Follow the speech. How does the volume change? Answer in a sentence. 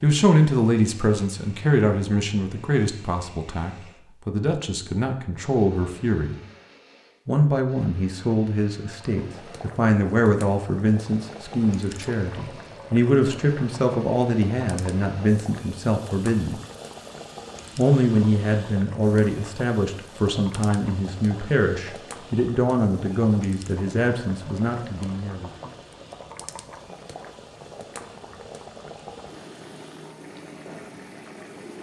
The volume of the speech stays about the same.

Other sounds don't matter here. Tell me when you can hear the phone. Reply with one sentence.
The phone can't be heard in this clip.